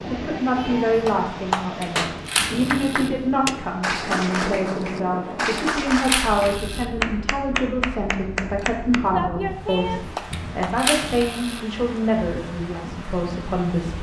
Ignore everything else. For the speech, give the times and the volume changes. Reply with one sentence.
The speech can be heard from 0.1 to 13.9 s, at a steady volume.